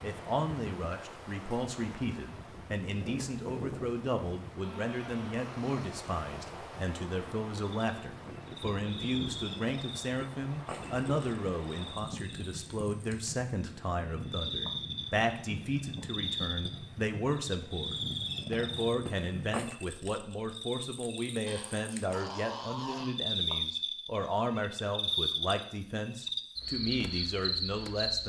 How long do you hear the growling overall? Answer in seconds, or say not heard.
3 s.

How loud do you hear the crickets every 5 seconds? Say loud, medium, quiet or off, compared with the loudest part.
off, medium, medium, medium, loud, loud.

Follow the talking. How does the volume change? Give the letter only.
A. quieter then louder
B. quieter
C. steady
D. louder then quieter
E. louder
C.